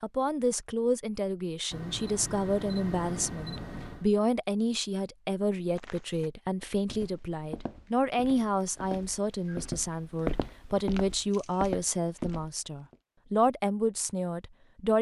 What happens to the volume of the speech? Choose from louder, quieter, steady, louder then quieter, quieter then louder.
steady.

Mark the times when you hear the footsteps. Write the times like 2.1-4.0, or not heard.
5.8-12.9.